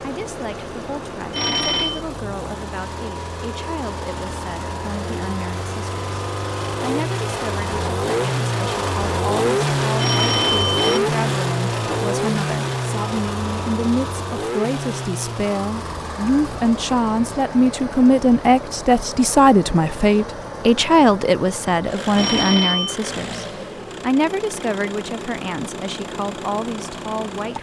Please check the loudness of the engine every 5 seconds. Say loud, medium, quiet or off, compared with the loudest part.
medium, loud, loud, medium, medium, medium.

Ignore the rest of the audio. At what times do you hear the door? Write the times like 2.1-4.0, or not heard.
not heard.